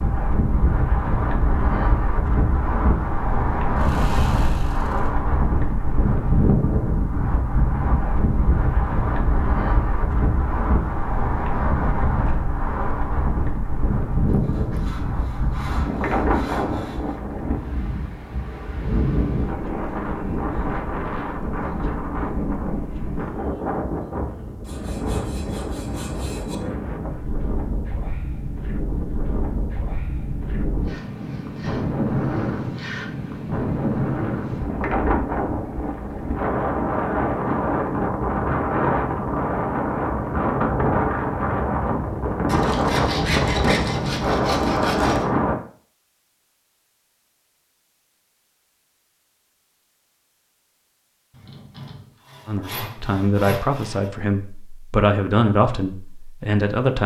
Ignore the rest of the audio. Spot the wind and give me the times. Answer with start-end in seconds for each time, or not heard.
0.0-45.5.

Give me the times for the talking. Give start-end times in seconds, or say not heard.
52.5-57.0.